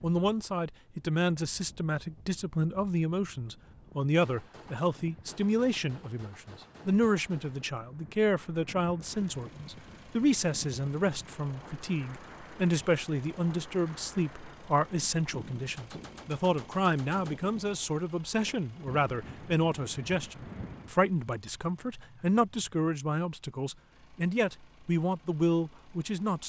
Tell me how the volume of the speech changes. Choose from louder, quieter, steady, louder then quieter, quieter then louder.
steady.